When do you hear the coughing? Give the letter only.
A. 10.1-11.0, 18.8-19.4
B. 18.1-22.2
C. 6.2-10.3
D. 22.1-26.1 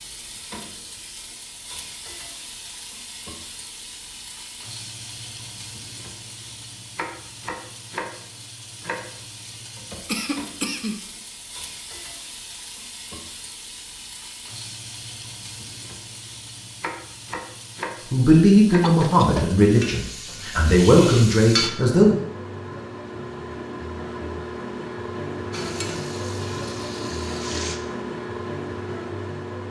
A.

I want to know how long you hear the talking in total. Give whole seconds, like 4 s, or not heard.
4 s.